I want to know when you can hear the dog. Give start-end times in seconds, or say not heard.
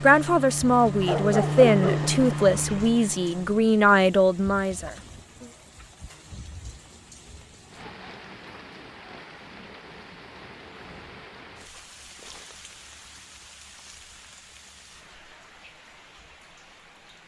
1.1-2.2.